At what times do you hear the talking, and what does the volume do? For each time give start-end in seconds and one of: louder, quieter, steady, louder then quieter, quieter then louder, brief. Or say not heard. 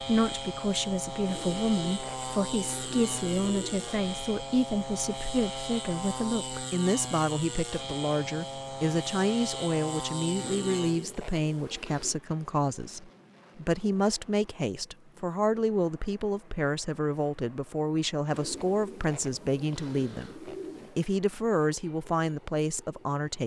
0.0-23.4 steady.